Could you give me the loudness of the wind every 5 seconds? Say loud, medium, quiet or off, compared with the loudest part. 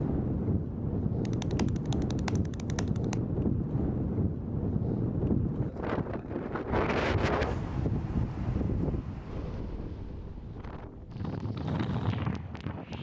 loud, loud, medium.